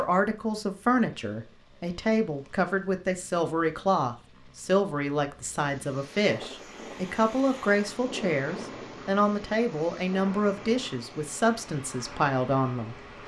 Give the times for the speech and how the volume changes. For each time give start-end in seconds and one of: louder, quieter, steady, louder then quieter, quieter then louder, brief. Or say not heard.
0.0-12.9 steady.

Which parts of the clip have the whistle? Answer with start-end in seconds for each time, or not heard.
not heard.